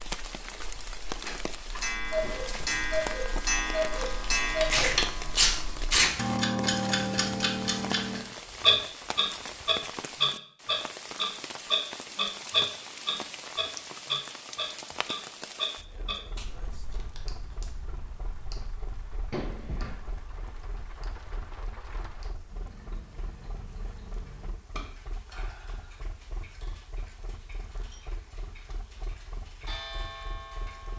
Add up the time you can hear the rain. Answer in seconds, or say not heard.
31 s.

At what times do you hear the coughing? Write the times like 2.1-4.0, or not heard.
2.2-3.0, 19.3-19.9.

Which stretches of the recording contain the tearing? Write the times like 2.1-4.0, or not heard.
4.0-6.2, 16.4-17.7.